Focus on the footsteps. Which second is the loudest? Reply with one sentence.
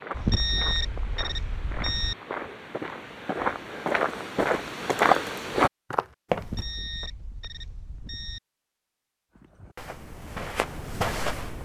The loudest moment of the footsteps is at 5 seconds.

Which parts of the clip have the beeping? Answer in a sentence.
The beeping can be heard from 0.1 to 2.1 s and from 6.4 to 8.4 s.